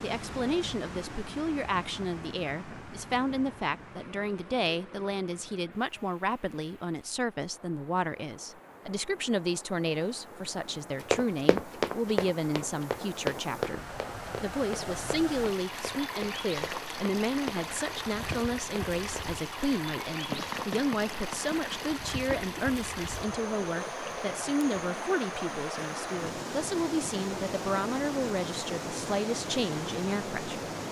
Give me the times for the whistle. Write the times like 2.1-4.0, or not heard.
not heard.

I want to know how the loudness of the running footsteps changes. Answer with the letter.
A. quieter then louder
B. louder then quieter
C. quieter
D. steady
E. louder
C.